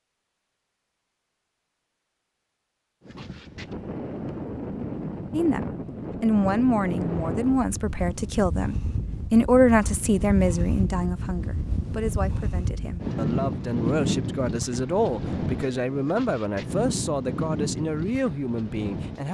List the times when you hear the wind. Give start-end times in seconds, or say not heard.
3.0-19.2.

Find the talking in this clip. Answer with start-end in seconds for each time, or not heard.
5.3-19.2.